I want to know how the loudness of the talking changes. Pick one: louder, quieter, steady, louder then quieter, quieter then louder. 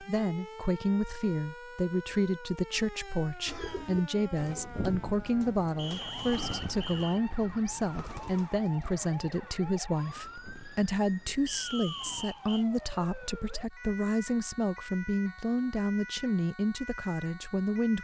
steady.